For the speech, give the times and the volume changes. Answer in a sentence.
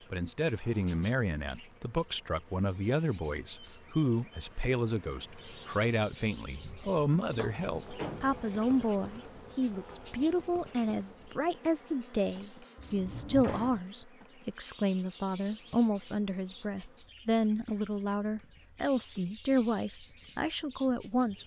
The speech can be heard from 0.1 to 21.4 s, at a steady volume.